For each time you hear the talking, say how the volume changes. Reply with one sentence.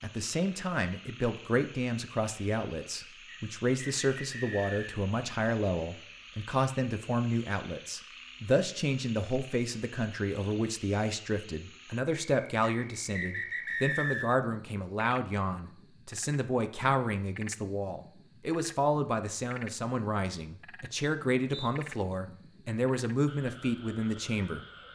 You can hear the talking from 0.0 to 24.6 s, at a steady volume.